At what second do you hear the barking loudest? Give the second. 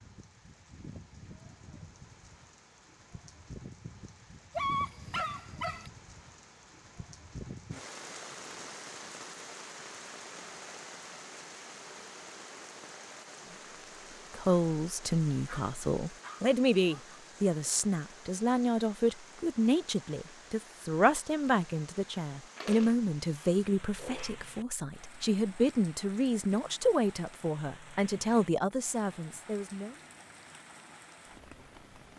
5 s.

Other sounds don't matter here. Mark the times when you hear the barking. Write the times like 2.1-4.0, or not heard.
4.5-5.9, 15.4-17.2, 22.6-24.4.